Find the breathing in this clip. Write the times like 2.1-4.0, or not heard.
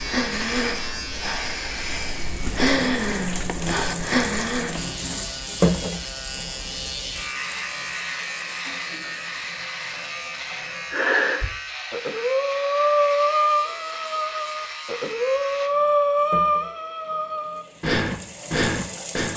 0.0-4.8, 10.6-19.3.